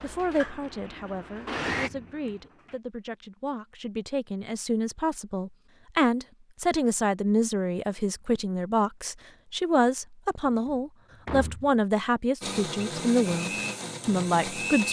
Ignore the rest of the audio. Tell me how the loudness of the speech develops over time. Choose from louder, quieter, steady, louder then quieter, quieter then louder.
louder.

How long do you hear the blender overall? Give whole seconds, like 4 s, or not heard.
4 s.